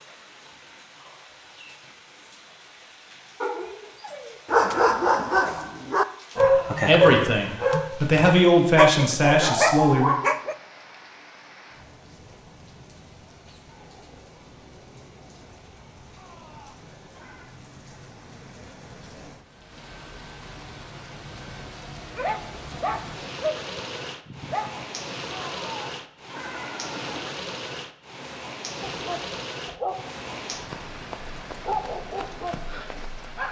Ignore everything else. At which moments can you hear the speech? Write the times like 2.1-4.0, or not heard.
6.8-10.2.